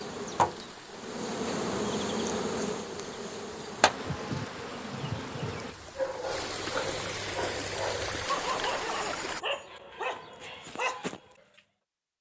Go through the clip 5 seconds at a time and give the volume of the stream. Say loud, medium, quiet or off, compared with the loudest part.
medium, loud, off.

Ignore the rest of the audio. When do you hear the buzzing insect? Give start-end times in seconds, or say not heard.
0.0-5.8.